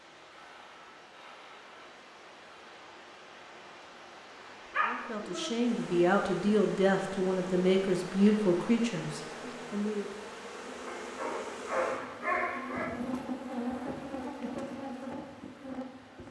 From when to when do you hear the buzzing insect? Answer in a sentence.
The buzzing insect can be heard from 5.7 to 16.2 s.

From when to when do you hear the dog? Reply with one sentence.
You can hear the dog from 4.5 to 5.5 s and from 10.8 to 12.8 s.